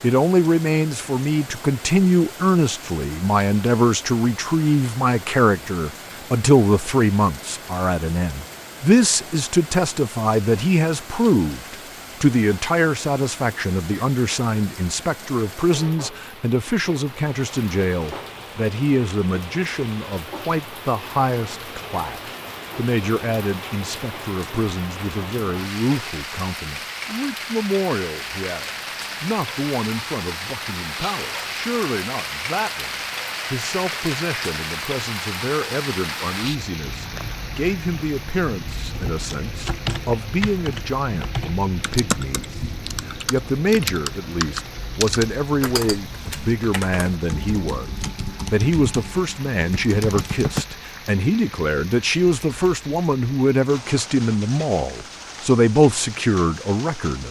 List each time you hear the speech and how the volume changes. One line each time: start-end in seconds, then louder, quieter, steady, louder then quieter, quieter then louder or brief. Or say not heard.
0.0-32.9 quieter
33.5-57.2 louder.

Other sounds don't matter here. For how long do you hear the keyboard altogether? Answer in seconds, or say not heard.
12 s.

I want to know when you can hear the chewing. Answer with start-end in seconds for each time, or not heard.
not heard.